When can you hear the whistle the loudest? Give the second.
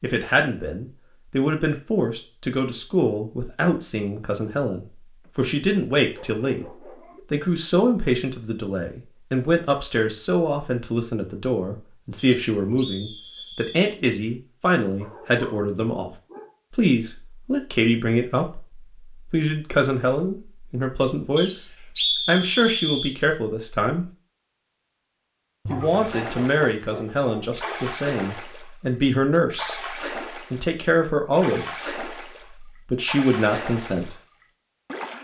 22 s.